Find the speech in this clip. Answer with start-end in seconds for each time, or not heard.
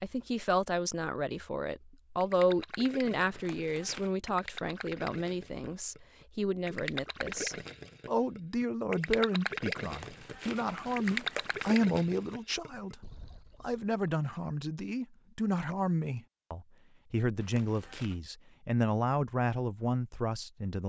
0.0-20.8.